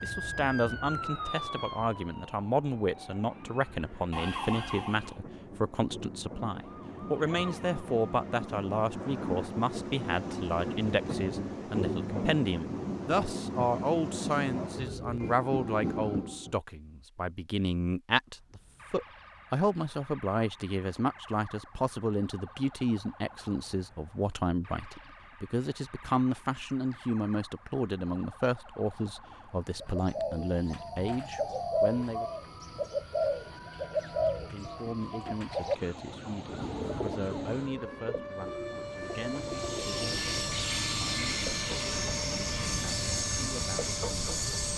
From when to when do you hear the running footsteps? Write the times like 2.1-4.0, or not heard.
not heard.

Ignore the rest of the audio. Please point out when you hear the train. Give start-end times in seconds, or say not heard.
0.0-16.6, 36.4-44.7.